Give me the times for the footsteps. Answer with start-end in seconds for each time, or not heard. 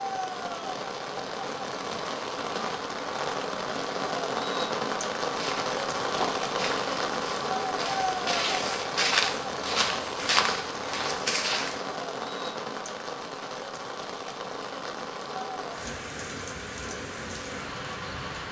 5.2-11.8.